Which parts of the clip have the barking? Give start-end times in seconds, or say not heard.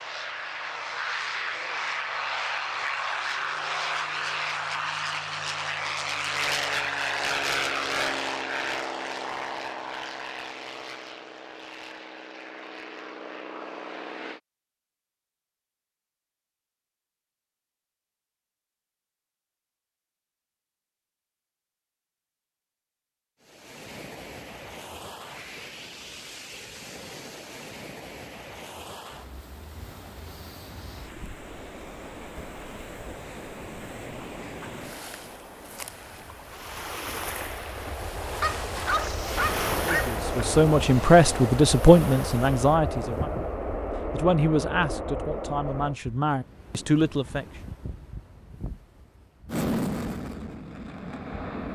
38.4-40.2.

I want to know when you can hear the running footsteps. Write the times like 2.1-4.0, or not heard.
not heard.